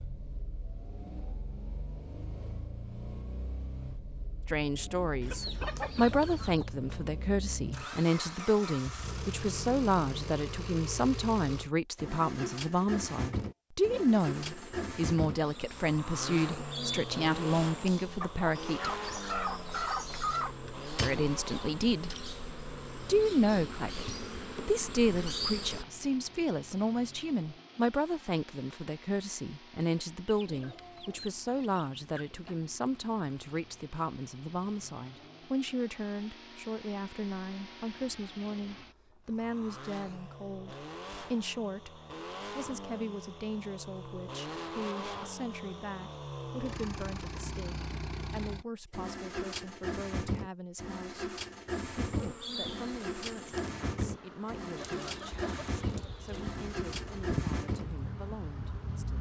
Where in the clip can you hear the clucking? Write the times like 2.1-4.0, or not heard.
5.2-6.7, 18.2-20.6, 30.2-32.5, 54.8-56.5.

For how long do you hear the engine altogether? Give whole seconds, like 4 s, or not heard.
59 s.